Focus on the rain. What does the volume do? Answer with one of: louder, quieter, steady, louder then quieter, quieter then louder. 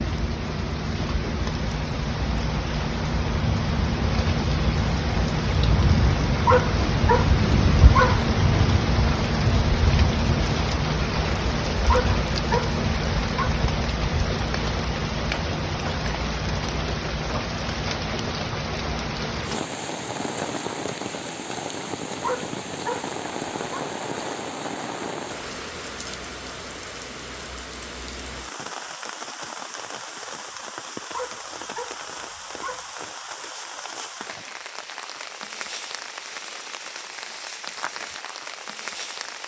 quieter.